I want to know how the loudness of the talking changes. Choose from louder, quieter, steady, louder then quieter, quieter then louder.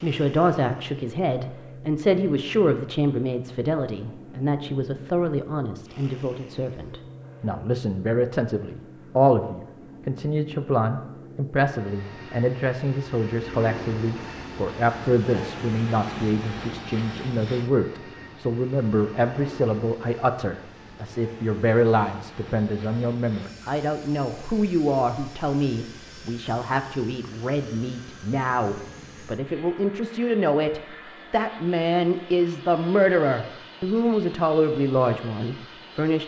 steady.